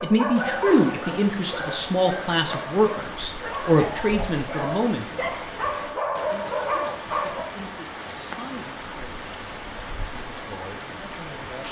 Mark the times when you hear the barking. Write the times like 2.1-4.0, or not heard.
0.0-7.5.